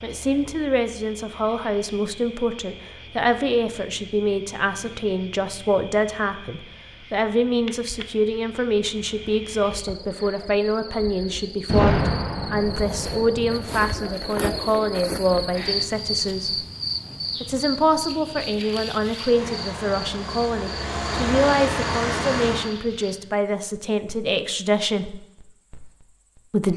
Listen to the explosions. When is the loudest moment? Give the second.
12 s.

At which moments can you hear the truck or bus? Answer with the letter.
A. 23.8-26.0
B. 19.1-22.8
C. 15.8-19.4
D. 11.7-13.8
B.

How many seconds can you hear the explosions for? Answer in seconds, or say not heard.
2 s.